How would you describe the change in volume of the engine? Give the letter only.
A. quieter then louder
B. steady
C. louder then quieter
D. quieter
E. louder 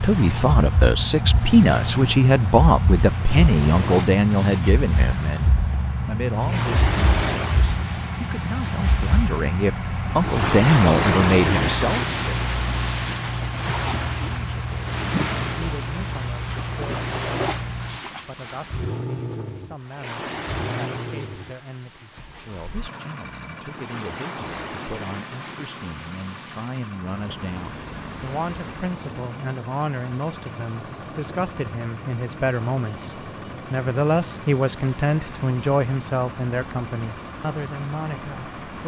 D.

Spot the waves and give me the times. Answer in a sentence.
You can hear the waves from 0.0 to 38.8 s.